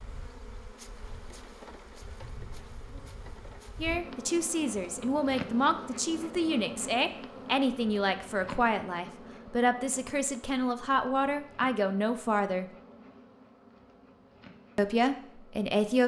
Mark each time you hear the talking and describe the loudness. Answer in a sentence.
The talking can be heard from 3.8 to 12.7 s, at a steady volume; and briefly from 14.8 to 16.0 s.